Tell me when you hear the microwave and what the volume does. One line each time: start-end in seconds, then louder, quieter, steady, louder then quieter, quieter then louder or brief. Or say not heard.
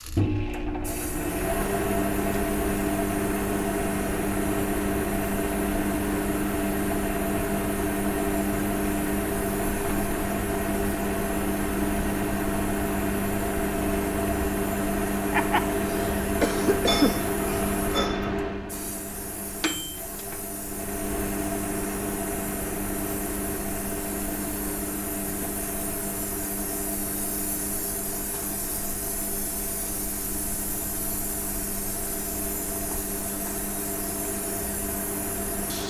0.0-35.8 quieter.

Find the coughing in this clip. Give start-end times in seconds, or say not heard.
15.3-17.1.